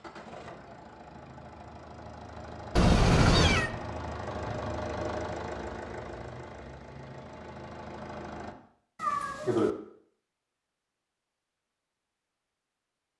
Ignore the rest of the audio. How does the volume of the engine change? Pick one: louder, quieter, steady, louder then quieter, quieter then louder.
louder then quieter.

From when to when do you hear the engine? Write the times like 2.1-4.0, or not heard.
0.0-8.6.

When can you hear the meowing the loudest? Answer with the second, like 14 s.
3 s.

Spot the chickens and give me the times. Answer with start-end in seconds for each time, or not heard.
not heard.